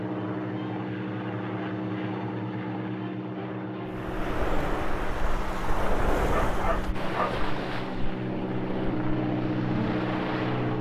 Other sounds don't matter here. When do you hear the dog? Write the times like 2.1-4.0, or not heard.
6.3-7.4.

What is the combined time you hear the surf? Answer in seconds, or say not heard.
7 s.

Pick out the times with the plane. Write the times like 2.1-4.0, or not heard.
0.0-10.7.